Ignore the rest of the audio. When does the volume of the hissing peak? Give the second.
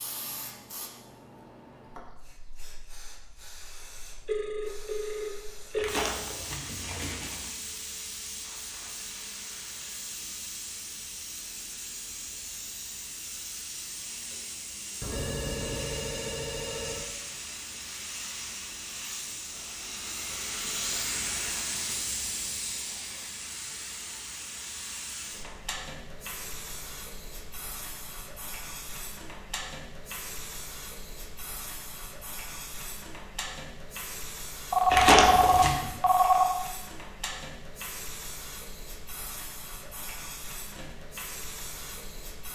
21 s.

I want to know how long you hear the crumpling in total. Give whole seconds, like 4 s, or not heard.
3 s.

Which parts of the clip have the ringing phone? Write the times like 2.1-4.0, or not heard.
4.2-6.0, 15.0-17.0, 34.7-36.5.